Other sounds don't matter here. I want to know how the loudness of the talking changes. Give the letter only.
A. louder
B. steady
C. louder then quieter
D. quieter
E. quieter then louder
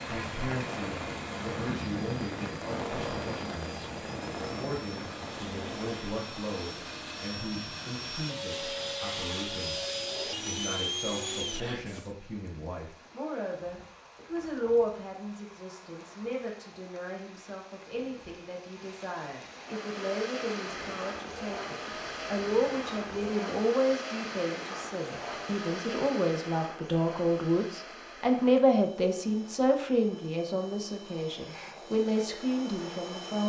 A.